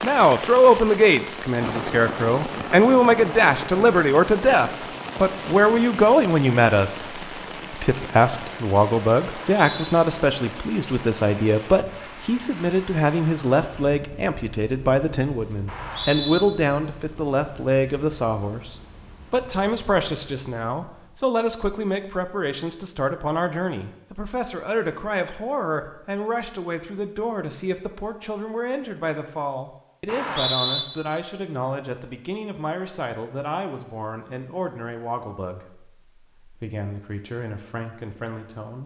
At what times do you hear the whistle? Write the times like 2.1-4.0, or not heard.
9.5-9.9, 15.7-16.4, 30.1-30.9.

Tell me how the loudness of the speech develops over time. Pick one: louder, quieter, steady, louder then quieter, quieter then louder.
quieter.